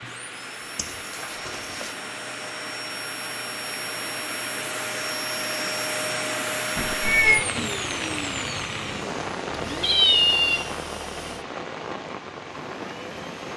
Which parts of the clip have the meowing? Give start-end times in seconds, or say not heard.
0.8-1.9, 6.8-7.5, 9.8-10.7.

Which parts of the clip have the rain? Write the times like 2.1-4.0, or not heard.
0.0-13.5.